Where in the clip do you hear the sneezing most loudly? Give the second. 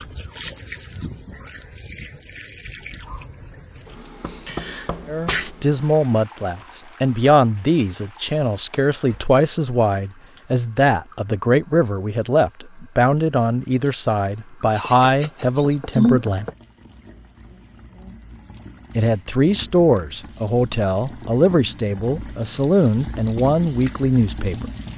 16 s.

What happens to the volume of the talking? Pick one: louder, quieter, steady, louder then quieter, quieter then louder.
steady.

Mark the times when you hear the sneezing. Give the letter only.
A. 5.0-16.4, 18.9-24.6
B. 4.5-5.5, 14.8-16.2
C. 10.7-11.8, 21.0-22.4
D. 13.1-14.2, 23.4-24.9
B.